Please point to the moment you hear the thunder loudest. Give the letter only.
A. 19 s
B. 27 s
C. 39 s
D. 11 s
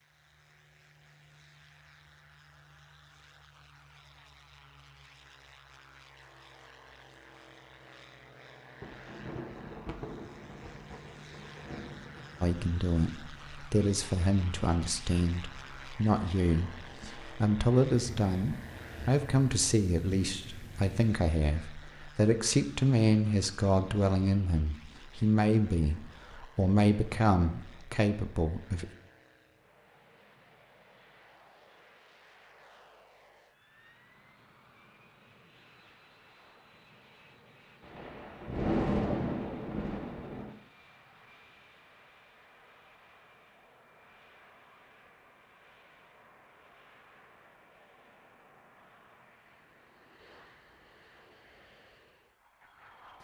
C.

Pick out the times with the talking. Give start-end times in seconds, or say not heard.
12.4-28.9.